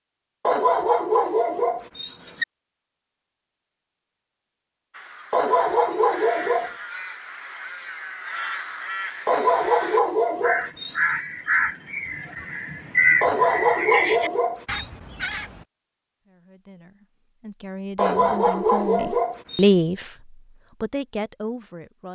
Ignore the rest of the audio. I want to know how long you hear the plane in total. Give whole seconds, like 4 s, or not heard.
not heard.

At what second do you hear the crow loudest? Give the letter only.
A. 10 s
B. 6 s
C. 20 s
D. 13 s
D.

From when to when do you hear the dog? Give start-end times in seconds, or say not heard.
0.5-2.5, 5.3-6.7, 9.2-10.9, 13.2-14.8, 17.9-19.6.